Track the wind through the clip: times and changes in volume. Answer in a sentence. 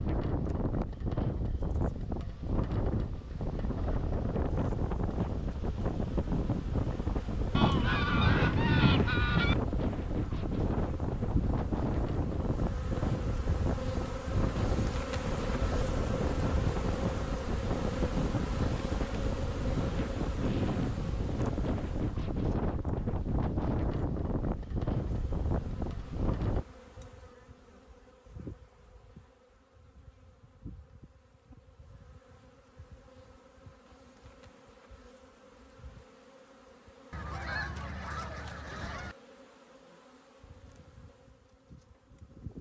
You can hear the wind from 0.0 to 26.6 s, at a steady volume.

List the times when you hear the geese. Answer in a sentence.
The geese can be heard from 7.5 to 9.6 s and from 37.1 to 39.1 s.